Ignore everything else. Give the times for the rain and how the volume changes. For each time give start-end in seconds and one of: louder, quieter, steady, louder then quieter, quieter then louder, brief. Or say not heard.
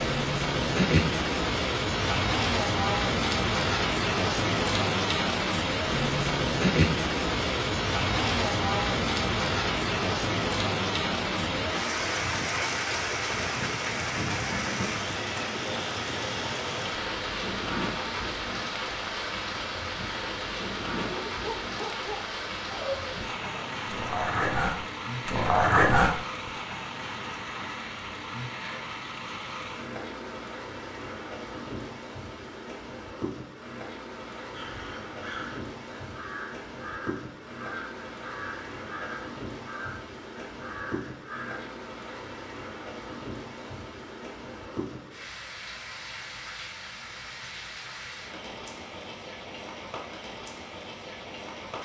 0.0-51.8 quieter.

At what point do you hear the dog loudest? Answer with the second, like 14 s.
26 s.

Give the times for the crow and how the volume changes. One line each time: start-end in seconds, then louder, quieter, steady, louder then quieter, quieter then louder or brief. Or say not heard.
34.5-41.8 steady.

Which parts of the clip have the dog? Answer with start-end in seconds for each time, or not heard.
20.9-26.2.